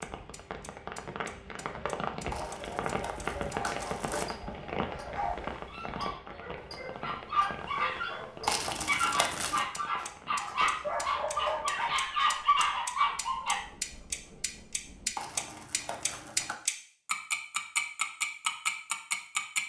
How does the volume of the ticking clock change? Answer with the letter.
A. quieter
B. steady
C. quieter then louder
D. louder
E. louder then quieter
D.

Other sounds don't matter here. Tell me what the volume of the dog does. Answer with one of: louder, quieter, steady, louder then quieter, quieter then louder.
louder.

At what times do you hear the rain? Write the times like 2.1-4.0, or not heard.
0.0-15.2.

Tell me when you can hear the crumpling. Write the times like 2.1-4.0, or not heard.
2.3-4.3, 8.4-9.7, 15.2-16.6.